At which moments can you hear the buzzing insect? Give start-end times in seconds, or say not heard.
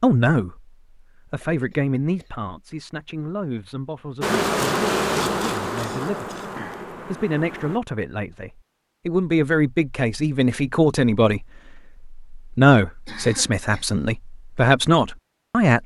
4.2-7.8.